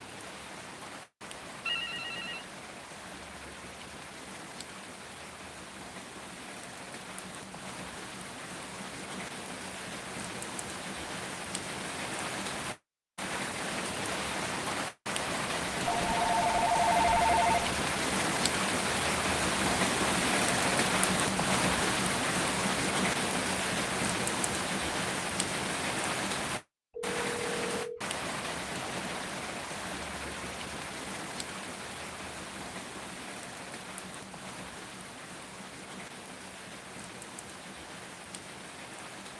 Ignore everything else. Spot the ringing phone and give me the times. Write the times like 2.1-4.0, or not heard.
1.6-2.5, 15.8-17.8, 26.9-28.0.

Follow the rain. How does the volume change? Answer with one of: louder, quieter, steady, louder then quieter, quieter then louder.
louder then quieter.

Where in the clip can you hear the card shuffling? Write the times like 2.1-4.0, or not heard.
not heard.